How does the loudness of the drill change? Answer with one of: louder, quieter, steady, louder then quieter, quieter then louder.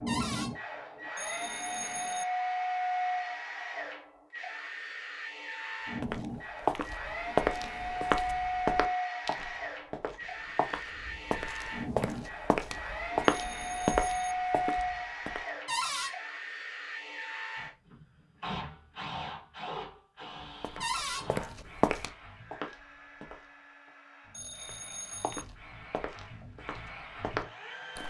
quieter.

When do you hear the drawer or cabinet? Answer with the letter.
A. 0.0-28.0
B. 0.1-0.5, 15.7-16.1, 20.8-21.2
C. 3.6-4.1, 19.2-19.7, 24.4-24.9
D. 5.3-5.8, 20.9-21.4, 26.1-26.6
B.